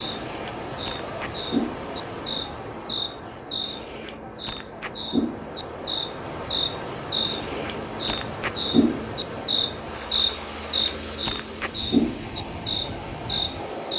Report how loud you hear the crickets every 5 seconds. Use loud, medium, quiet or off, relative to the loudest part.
medium, loud, loud.